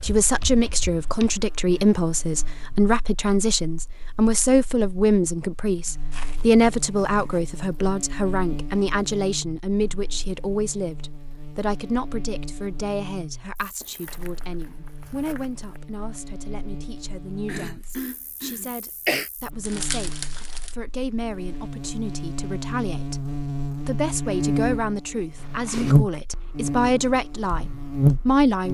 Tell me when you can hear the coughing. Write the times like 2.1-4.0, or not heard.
17.4-19.3.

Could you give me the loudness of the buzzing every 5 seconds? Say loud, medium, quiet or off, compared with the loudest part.
quiet, quiet, quiet, quiet, medium, loud.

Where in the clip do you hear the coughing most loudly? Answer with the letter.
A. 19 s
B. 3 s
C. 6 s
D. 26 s
A.